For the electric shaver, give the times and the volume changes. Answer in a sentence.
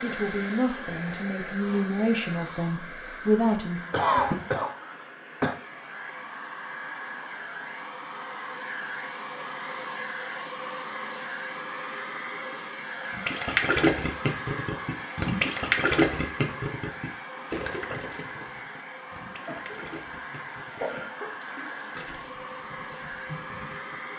You can't hear the electric shaver here.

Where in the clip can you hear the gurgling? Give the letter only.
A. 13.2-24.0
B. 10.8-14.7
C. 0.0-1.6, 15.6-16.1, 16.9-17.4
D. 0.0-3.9
A.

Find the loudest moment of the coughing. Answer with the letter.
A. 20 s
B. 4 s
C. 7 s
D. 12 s
B.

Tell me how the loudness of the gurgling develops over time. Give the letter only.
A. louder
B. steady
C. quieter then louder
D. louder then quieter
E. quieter
E.